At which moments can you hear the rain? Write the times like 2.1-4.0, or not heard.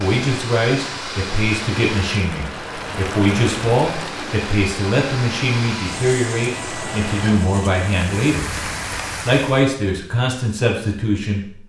0.0-9.8.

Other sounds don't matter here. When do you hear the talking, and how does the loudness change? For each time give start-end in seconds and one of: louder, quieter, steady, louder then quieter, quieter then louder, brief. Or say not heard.
0.0-8.5 steady
9.2-11.6 brief.